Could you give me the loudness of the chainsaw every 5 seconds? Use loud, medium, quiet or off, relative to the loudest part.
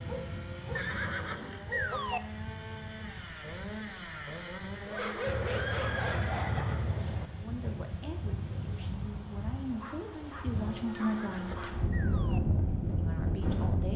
loud, loud, off.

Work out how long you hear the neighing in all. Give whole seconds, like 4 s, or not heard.
5 s.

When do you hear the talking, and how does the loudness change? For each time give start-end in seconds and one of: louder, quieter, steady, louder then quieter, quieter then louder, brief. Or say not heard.
7.4-11.9 louder
12.9-13.9 brief.